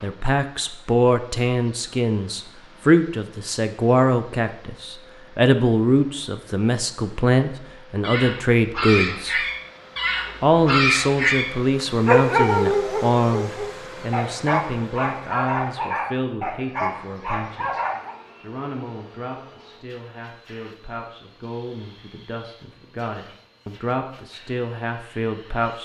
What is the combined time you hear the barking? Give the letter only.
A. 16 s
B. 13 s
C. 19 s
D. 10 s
D.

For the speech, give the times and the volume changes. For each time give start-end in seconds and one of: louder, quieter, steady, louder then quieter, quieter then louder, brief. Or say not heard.
0.0-9.4 steady
10.4-25.7 quieter then louder.